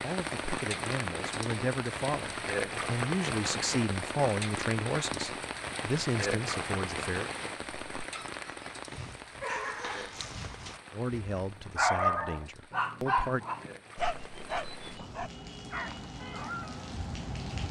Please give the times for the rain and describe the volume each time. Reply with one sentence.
You can hear the rain from 0.0 to 17.6 s, getting quieter then louder.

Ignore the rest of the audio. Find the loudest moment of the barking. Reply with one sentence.
The loudest moment of the barking is at 12 seconds.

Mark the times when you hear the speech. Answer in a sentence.
The speech can be heard from 0.0 to 7.3 s and from 10.9 to 13.4 s.